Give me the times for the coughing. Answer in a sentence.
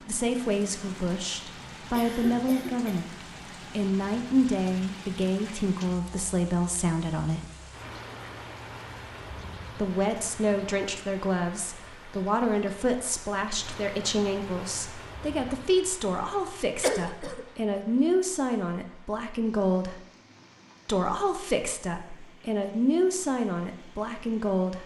You can hear the coughing from 1.9 to 3.0 s and from 16.8 to 17.4 s.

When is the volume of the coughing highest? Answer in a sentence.
The loudest moment of the coughing is at 17 seconds.